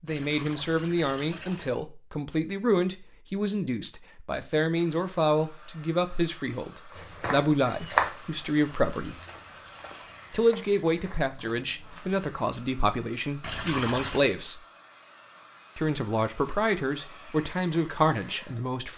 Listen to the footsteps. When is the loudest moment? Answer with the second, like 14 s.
8 s.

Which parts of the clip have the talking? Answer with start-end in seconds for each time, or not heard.
0.0-9.2, 10.3-14.6, 15.8-18.9.